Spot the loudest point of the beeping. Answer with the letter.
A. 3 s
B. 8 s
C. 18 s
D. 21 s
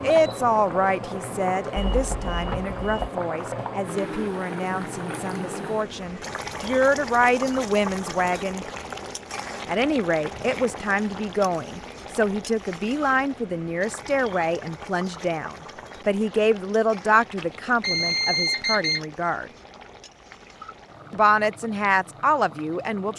C.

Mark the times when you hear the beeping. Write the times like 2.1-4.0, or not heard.
1.8-3.1, 17.4-19.0.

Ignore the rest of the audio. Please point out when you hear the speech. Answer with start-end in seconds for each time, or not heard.
0.0-8.7, 9.7-19.5, 21.1-23.1.